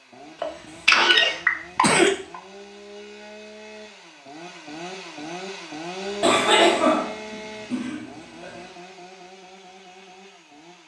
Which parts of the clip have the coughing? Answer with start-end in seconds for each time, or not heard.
0.4-2.4, 6.2-8.6.